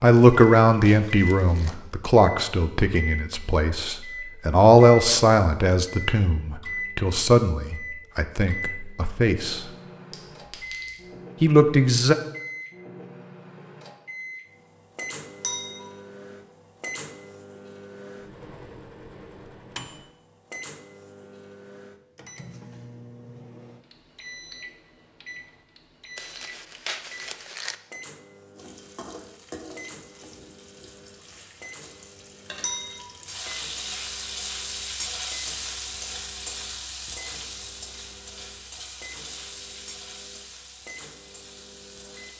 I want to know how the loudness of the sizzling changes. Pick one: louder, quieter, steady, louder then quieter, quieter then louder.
louder then quieter.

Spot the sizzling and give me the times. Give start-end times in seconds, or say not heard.
28.5-42.3.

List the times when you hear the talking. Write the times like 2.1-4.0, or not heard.
0.0-9.6, 11.4-12.2.